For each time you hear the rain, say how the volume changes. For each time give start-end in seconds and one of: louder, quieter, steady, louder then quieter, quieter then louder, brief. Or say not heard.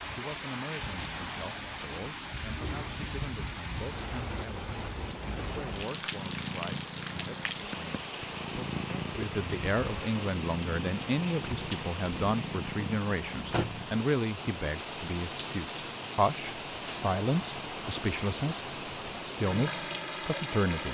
0.0-20.8 steady.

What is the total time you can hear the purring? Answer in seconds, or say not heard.
9 s.